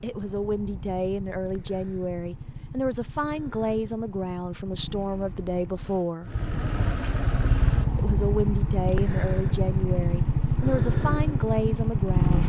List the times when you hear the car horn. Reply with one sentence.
The car horn can't be heard in this clip.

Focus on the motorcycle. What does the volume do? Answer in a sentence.
The loudness of the motorcycle goes up.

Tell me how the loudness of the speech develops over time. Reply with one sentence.
The volume of the speech stays about the same.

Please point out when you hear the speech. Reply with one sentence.
The speech can be heard from 0.0 to 6.3 s and from 8.0 to 12.4 s.